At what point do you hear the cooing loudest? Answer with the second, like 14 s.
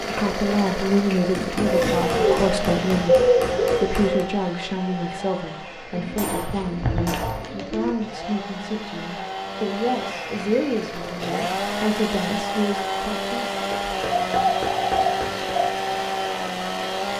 3 s.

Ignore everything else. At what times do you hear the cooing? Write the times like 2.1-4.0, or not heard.
1.6-4.2, 5.9-8.0, 14.2-15.8.